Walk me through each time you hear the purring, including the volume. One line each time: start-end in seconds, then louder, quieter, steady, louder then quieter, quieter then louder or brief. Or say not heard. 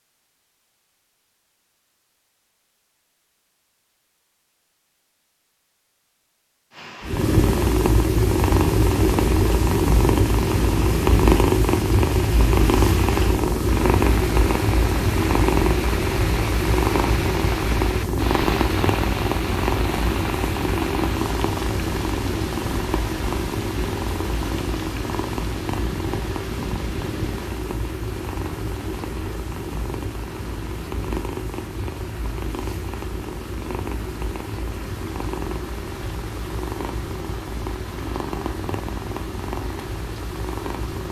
7.0-41.0 quieter.